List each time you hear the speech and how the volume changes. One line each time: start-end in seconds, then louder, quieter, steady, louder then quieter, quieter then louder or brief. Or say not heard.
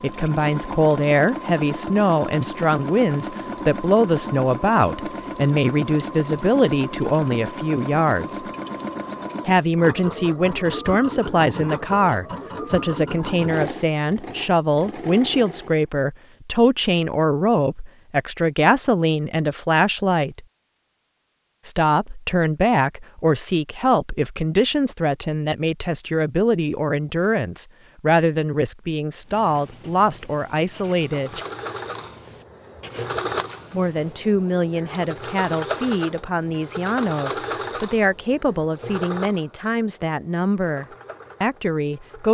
0.0-8.4 steady
9.4-20.4 steady
21.6-31.4 steady
33.7-42.2 steady.